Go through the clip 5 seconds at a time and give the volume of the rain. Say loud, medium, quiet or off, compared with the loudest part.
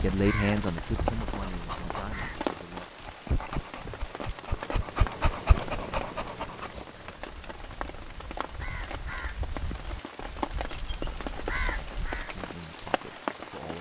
loud, medium, loud.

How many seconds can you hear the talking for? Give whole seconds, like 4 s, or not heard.
4 s.